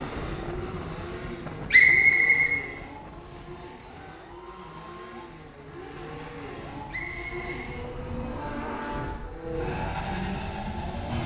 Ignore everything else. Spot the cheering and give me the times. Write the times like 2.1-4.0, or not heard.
3.3-5.3.